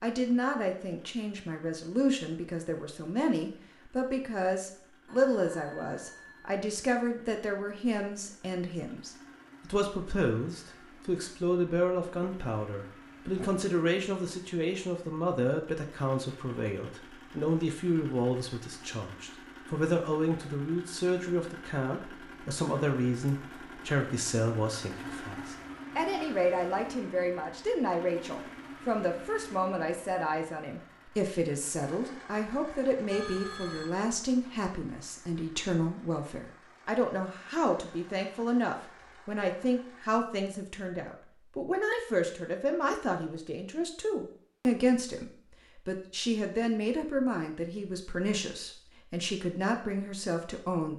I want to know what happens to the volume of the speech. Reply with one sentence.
The loudness of the speech stays about the same.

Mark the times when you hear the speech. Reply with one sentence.
You can hear the speech from 0.0 to 50.9 s.